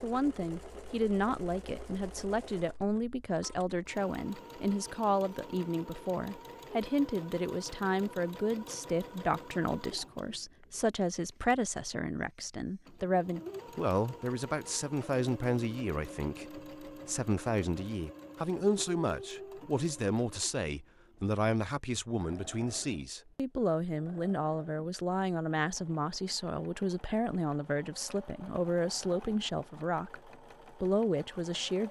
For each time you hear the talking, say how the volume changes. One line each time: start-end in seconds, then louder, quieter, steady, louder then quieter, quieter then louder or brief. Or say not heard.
0.0-31.8 steady.